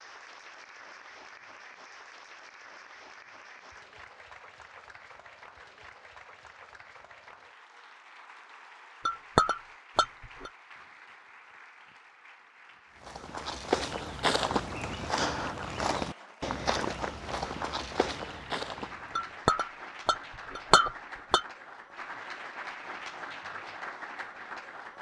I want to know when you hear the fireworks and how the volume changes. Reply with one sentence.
You can't hear the fireworks here.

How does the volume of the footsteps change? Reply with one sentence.
The volume of the footsteps goes down.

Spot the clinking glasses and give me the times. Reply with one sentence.
You can hear the clinking glasses from 9.1 to 10.5 s and from 19.1 to 21.4 s.